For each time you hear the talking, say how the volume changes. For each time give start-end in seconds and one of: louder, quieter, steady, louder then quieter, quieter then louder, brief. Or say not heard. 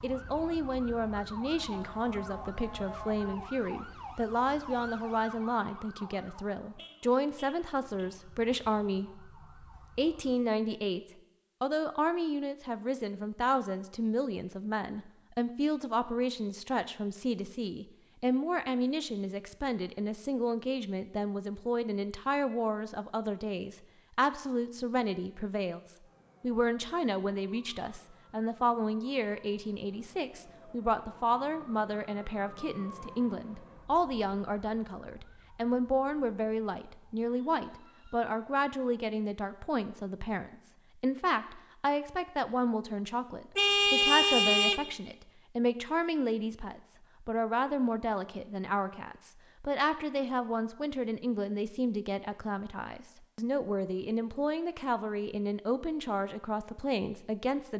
0.0-9.3 steady
9.9-11.0 brief
11.6-57.7 steady.